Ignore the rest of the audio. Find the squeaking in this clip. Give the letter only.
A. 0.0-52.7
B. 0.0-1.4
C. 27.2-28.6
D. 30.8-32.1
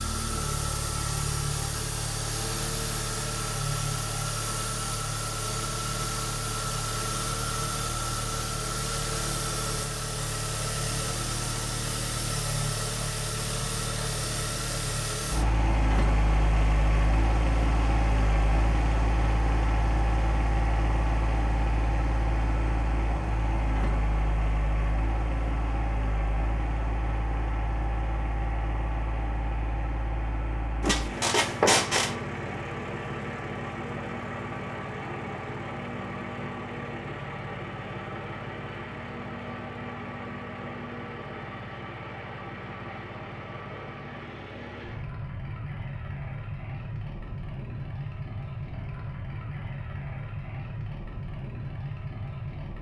D.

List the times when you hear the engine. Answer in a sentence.
The engine can be heard from 0.0 to 52.7 s.